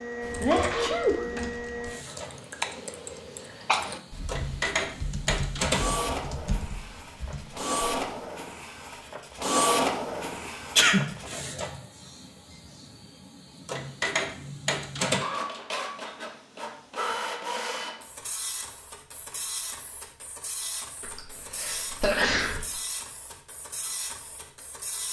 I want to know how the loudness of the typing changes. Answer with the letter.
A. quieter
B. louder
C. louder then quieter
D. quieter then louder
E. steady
C.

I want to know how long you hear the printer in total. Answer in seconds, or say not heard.
25 s.